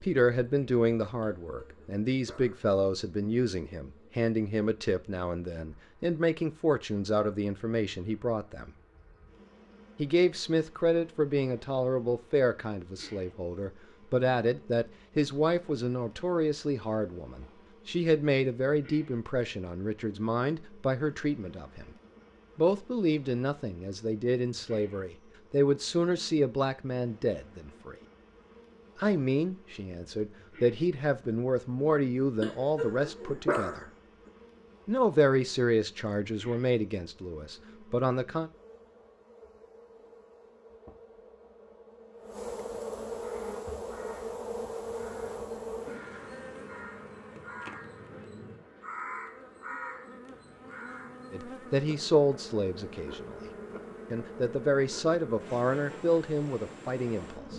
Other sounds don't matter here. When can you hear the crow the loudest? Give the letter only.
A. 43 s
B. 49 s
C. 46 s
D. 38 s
B.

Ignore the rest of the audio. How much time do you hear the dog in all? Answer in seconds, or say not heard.
3 s.